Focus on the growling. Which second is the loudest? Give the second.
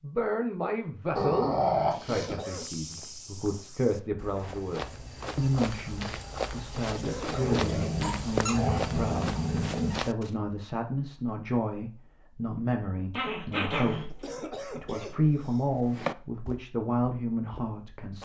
2 s.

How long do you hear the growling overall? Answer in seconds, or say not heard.
5 s.